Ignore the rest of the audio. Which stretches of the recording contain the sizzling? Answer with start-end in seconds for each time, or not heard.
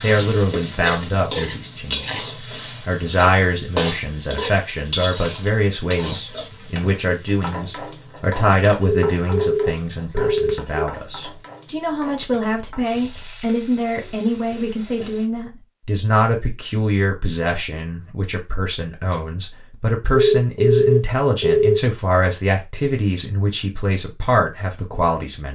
0.0-15.2.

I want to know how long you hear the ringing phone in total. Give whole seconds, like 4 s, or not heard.
3 s.